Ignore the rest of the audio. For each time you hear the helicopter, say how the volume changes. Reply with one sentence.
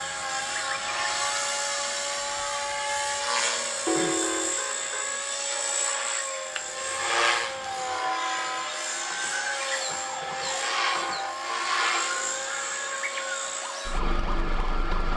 The helicopter can be heard from 0.0 to 15.1 s, at a steady volume.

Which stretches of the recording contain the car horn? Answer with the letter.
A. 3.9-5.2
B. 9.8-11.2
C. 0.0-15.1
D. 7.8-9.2
A.